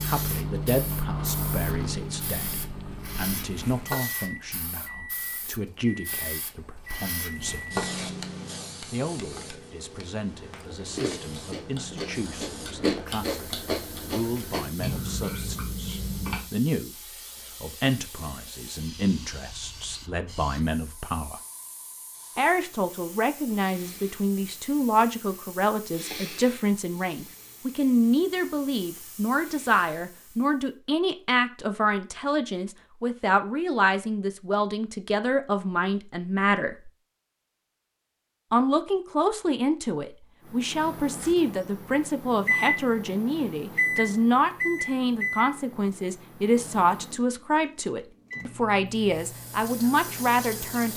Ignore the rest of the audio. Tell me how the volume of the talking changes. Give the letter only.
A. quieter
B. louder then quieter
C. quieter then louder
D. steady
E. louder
E.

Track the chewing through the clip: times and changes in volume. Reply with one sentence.
You can hear the chewing from 10.3 to 16.4 s, getting louder then quieter.